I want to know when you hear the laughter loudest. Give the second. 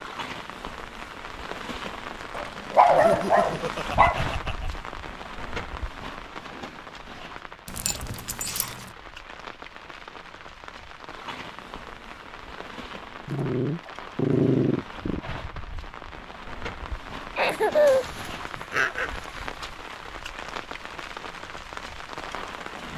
18 s.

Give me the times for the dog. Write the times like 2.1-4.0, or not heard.
2.4-4.2, 7.7-8.8, 13.2-15.2, 17.9-19.6.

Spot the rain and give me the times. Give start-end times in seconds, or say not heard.
0.0-22.9.